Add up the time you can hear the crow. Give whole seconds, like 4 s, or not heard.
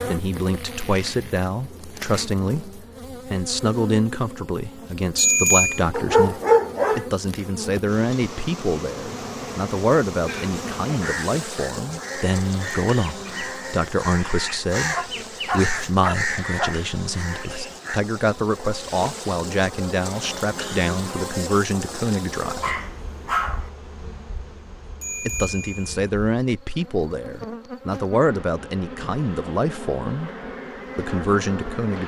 8 s.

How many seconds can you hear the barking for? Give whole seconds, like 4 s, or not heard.
4 s.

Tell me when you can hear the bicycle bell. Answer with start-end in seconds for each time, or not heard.
5.2-5.8, 25.0-25.9.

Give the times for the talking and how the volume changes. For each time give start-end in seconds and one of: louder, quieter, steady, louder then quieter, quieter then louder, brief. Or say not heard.
0.1-22.8 steady
25.2-30.3 steady
30.9-32.0 brief.